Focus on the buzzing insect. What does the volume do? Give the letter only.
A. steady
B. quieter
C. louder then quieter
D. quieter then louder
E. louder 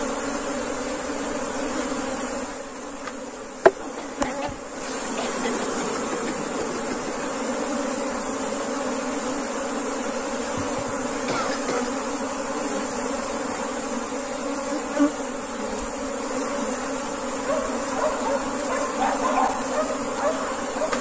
A.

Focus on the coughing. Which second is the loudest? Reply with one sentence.
The volume of the coughing peaks at 11 seconds.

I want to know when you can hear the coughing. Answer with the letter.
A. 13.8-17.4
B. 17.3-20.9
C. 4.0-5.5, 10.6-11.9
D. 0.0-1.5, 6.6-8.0
C.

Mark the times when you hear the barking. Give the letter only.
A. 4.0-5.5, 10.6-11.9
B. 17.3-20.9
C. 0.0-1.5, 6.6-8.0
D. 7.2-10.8
B.